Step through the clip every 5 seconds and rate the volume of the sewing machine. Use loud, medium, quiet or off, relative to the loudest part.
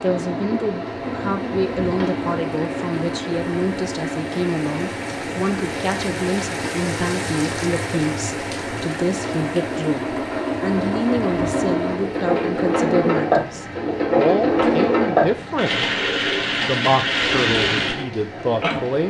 medium, medium, loud, loud.